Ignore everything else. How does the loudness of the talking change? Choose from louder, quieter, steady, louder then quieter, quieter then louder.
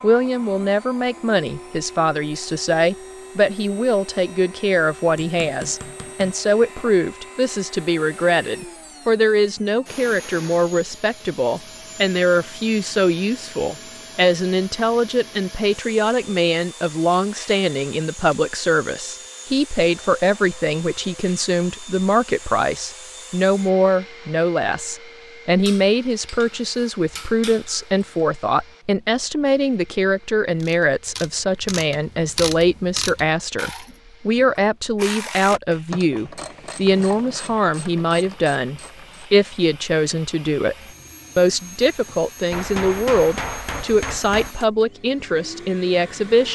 steady.